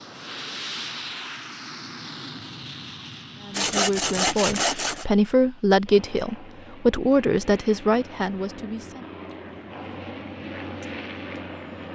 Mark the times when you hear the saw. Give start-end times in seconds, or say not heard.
3.5-5.0.